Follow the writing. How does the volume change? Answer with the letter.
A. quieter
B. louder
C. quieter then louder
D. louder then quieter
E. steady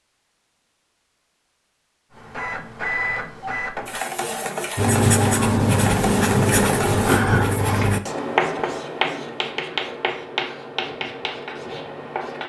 A.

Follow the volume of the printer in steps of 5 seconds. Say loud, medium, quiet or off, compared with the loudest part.
loud, loud, off.